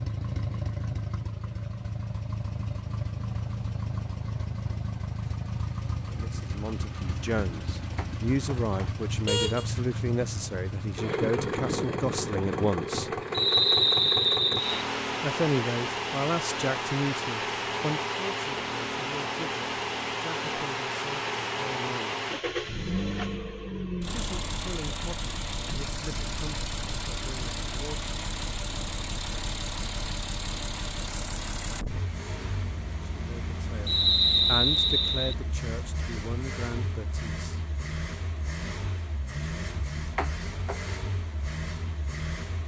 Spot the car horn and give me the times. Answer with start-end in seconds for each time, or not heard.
8.0-9.7, 40.1-40.8.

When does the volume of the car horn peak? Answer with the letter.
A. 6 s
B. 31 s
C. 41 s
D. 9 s
D.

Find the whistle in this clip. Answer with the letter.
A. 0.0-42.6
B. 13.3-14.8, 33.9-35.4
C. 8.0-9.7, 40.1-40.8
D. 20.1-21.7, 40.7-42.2
B.